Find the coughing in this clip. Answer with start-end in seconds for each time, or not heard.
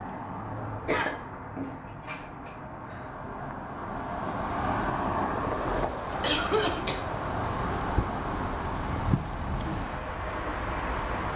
0.8-3.0, 6.2-7.0.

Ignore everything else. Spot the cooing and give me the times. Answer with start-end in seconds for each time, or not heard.
not heard.